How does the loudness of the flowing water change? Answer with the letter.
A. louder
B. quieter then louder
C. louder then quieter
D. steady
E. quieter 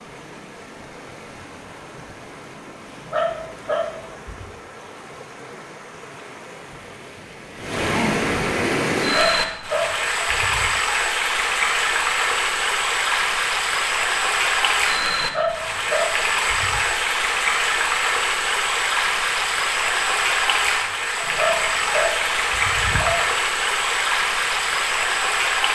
A.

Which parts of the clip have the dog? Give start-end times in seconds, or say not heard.
3.0-4.5, 9.0-10.7, 15.2-16.8, 21.4-23.2.